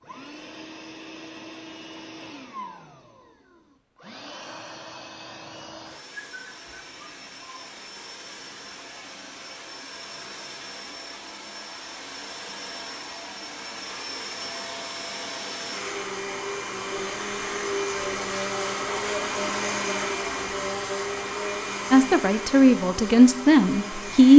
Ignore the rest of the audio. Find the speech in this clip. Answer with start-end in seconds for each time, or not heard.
21.9-24.3.